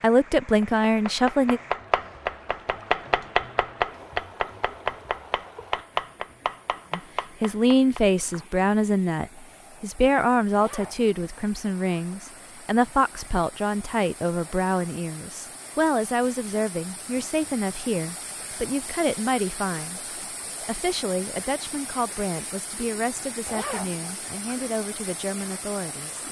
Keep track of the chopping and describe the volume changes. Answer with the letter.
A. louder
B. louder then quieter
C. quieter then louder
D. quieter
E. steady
D.